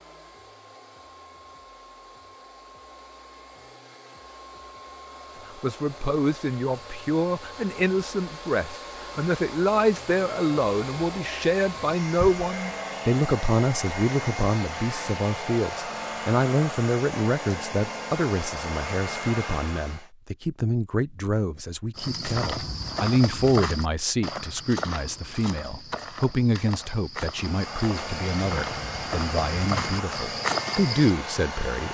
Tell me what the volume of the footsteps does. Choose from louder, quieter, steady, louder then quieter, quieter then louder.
quieter then louder.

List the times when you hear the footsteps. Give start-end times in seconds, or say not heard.
21.9-31.1.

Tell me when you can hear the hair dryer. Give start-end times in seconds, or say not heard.
0.0-20.1, 27.3-31.8.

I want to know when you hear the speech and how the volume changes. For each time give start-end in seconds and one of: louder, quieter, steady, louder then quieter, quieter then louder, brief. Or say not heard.
5.5-31.8 steady.